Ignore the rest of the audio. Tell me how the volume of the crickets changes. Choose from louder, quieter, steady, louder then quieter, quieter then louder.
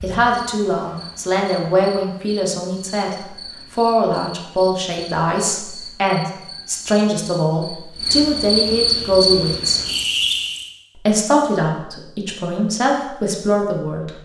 louder.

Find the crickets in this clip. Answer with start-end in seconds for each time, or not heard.
0.0-10.7.